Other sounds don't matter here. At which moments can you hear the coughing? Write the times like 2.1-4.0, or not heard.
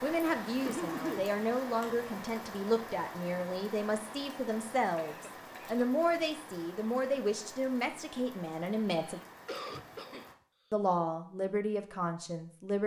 0.7-1.3, 5.0-5.8, 8.8-10.3.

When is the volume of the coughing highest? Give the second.
1 s.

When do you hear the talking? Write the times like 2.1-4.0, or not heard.
0.0-9.2, 10.7-12.8.